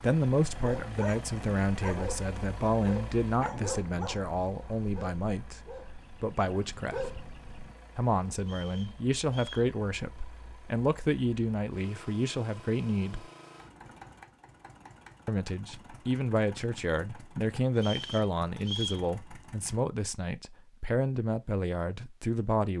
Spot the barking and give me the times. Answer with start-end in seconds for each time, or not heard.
0.3-7.8.